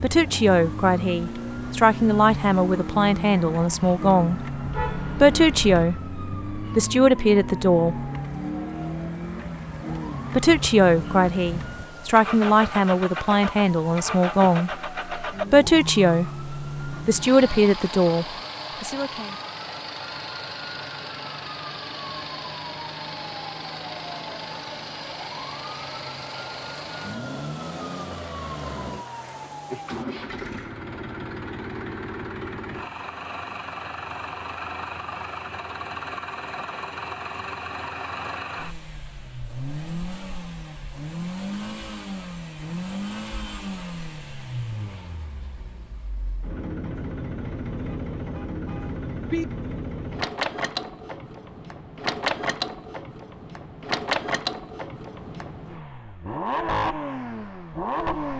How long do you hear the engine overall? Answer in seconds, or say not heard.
58 s.